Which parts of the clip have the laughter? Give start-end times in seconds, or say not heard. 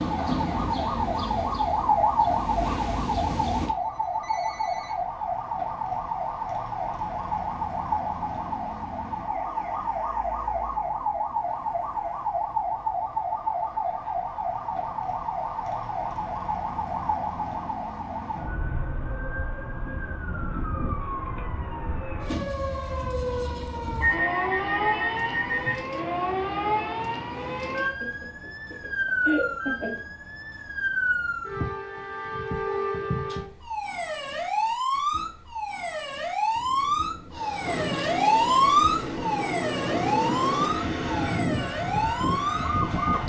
28.0-30.0.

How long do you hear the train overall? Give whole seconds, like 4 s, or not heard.
9 s.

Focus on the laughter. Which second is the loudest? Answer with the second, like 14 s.
29 s.